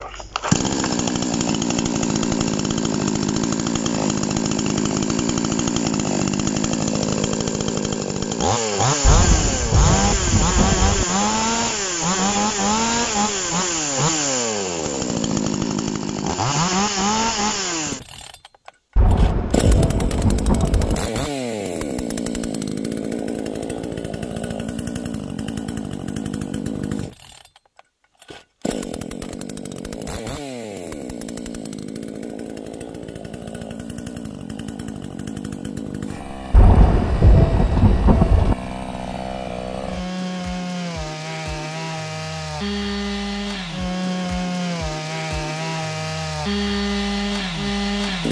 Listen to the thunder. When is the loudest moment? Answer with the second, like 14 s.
37 s.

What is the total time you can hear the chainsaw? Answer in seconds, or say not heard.
48 s.